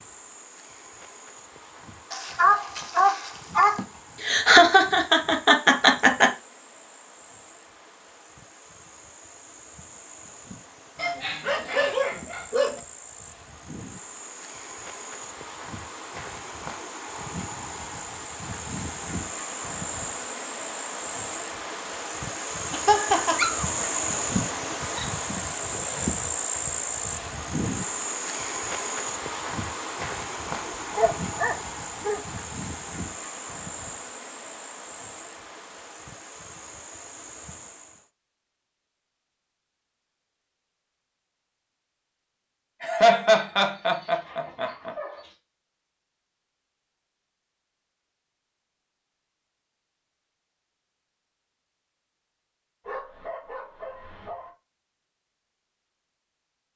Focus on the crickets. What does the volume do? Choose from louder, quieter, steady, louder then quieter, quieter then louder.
louder then quieter.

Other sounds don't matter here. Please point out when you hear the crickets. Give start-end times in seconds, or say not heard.
0.0-38.1.